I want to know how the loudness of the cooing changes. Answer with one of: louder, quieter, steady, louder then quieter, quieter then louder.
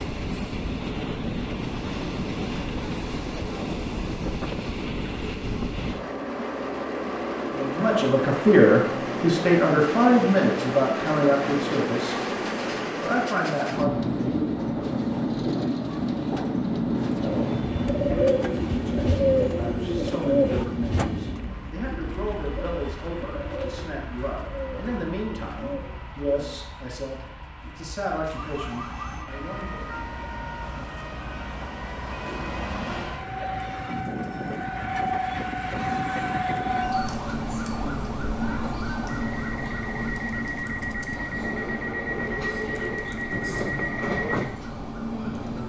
quieter.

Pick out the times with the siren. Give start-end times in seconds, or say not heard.
28.3-45.6.